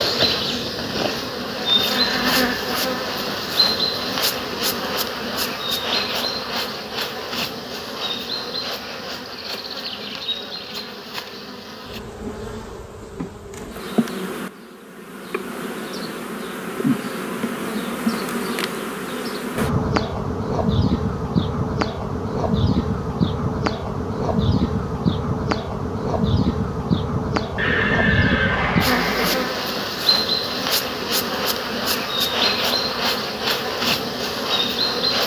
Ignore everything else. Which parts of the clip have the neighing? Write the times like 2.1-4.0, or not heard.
1.9-2.5, 27.6-29.4.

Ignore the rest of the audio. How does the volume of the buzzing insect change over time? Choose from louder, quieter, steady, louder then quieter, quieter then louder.
quieter then louder.